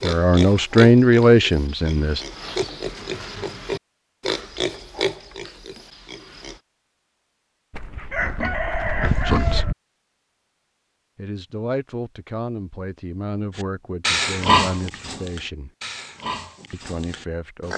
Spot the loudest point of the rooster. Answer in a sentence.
The volume of the rooster peaks at 9 seconds.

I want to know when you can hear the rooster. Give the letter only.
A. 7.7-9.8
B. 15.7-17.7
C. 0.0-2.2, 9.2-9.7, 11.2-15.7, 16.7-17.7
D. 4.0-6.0
A.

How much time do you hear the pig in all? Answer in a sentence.
You can hear the pig for 12 seconds altogether.